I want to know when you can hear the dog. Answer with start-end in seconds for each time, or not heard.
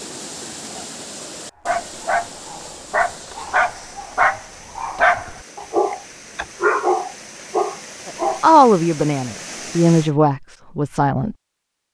1.6-8.4.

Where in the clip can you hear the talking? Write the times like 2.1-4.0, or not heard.
8.1-11.3.